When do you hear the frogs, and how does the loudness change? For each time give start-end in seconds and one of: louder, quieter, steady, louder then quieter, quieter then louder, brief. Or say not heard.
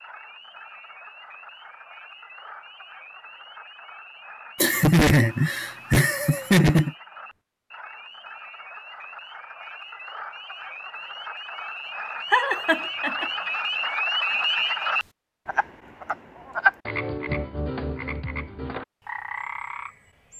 0.0-20.3 louder.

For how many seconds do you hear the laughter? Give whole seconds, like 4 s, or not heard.
3 s.